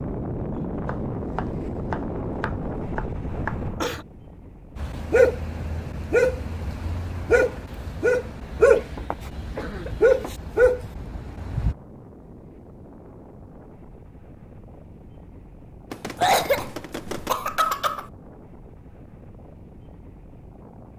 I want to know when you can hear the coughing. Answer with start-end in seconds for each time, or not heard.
3.4-4.0, 8.7-10.3, 16.1-18.1.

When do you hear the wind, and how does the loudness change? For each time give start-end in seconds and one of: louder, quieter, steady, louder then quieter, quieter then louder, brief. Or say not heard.
0.0-20.9 quieter.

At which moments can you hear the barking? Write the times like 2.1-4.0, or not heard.
4.8-11.8.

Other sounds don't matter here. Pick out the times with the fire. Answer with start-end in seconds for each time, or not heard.
not heard.